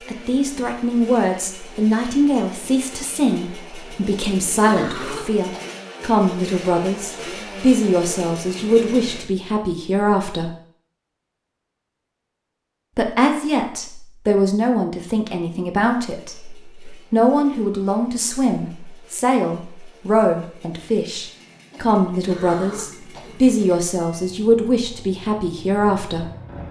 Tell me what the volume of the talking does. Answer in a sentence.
The loudness of the talking stays about the same.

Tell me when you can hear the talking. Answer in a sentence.
The talking can be heard from 0.1 to 10.5 s and from 12.9 to 26.3 s.